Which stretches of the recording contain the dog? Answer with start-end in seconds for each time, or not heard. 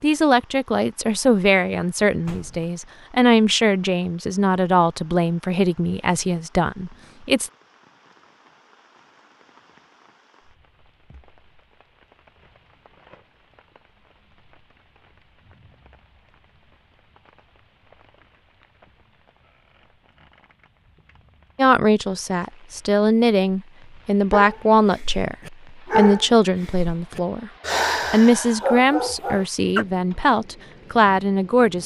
24.3-29.9.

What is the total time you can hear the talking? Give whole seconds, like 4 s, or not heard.
17 s.